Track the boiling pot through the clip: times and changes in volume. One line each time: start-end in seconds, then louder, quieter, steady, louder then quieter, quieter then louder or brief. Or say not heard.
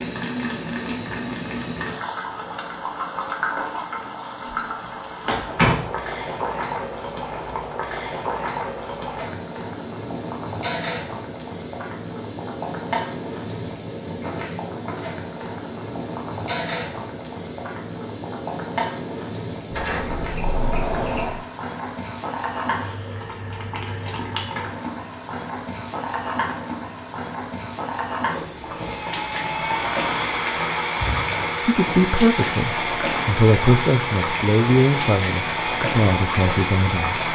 0.0-37.2 steady.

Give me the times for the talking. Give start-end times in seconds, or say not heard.
31.6-37.2.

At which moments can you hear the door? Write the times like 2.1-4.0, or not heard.
5.2-5.8, 19.7-21.4, 30.9-31.4.